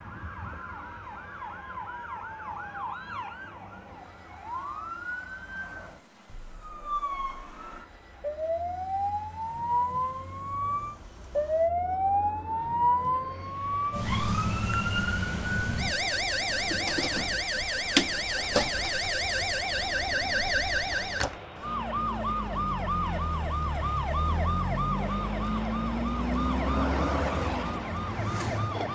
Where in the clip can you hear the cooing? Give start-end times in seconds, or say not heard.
not heard.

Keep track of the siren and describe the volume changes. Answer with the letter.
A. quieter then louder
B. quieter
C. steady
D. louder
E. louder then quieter
D.